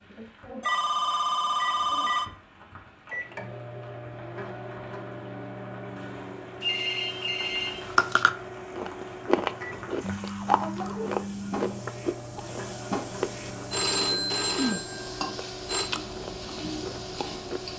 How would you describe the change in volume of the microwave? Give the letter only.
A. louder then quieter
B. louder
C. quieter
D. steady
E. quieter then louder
D.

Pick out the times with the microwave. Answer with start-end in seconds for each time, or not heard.
0.1-17.7.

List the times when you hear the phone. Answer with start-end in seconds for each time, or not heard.
0.6-2.3, 6.6-8.2, 13.7-15.9.